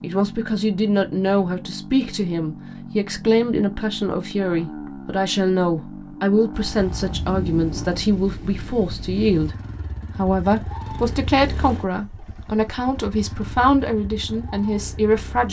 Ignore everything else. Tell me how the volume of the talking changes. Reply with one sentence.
The volume of the talking stays about the same.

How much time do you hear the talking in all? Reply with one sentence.
You can hear the talking for 15 seconds altogether.